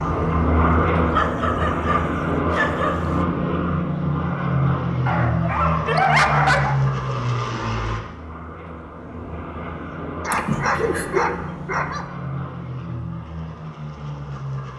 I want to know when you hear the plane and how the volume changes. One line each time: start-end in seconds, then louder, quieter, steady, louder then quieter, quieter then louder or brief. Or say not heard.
0.0-14.7 quieter.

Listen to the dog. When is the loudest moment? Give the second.
6 s.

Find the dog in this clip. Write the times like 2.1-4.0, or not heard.
1.1-3.1, 5.0-6.8, 10.2-12.1.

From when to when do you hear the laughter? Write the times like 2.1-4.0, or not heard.
10.3-11.1.